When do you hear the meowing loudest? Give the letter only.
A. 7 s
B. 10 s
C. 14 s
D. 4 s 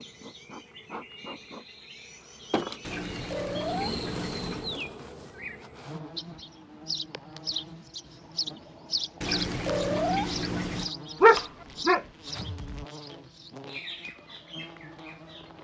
B.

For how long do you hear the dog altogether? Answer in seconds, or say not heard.
2 s.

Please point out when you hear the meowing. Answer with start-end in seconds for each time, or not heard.
2.8-4.8, 9.2-10.9.